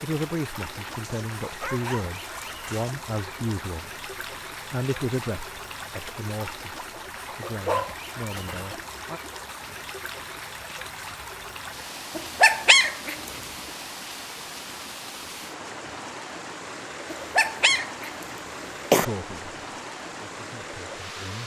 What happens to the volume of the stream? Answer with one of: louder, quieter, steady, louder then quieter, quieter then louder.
steady.